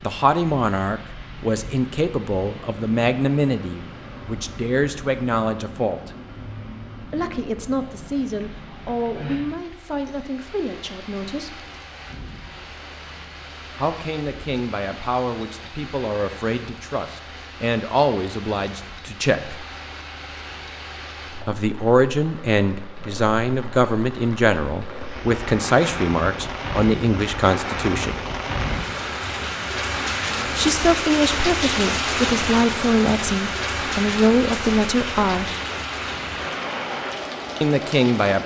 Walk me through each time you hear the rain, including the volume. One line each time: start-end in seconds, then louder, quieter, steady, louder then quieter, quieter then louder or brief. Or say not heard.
0.0-38.4 louder.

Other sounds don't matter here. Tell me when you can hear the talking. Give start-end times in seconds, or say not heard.
0.0-6.1, 7.0-11.6, 13.8-19.6, 21.4-28.2, 30.6-35.5, 37.6-38.4.